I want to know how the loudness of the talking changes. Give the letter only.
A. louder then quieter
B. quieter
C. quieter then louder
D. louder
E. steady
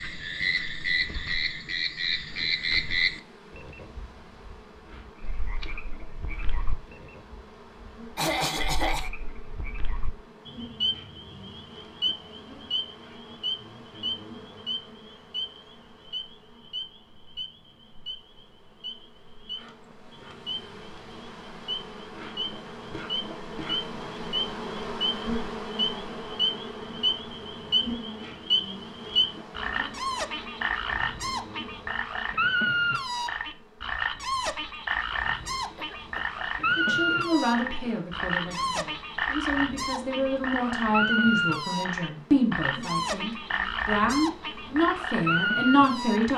D.